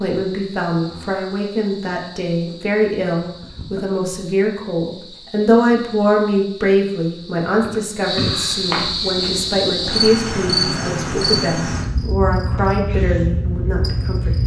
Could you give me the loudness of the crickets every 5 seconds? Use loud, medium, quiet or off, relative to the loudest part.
quiet, loud, loud.